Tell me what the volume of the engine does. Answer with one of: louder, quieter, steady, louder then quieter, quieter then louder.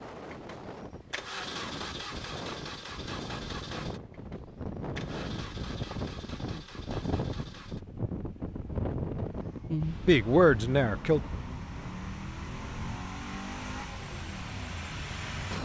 quieter then louder.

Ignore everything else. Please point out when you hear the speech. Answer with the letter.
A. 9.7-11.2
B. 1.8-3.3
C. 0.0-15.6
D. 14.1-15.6
A.